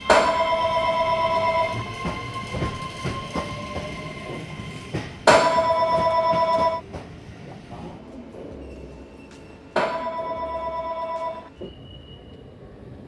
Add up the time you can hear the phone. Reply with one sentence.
You can hear the phone for 5 seconds altogether.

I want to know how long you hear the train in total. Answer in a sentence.
The train can be heard for 13 seconds in total.